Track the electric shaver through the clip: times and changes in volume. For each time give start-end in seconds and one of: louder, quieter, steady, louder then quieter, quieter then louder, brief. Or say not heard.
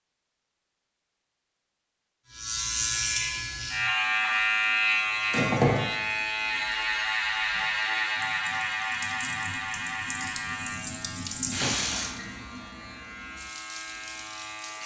2.3-14.8 quieter.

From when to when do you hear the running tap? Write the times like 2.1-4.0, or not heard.
3.0-14.8.